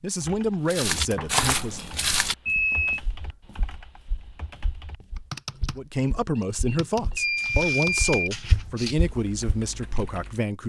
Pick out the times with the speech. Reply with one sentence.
The speech can be heard from 0.0 to 1.8 s and from 5.8 to 10.6 s.